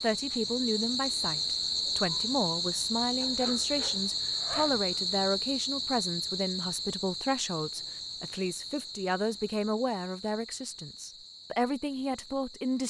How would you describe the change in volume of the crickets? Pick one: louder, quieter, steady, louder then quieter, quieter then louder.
quieter.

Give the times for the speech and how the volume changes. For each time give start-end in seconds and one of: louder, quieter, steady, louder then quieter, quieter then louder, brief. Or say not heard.
0.0-12.8 steady.